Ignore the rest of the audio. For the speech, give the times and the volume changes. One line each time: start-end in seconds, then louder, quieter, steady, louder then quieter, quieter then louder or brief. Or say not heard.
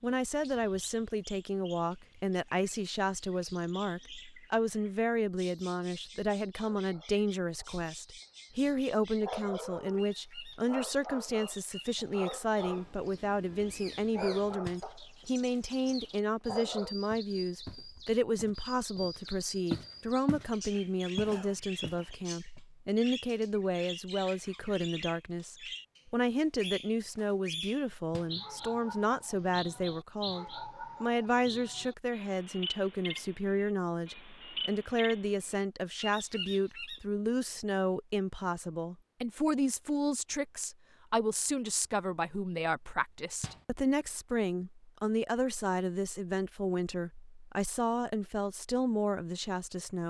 0.0-50.0 steady.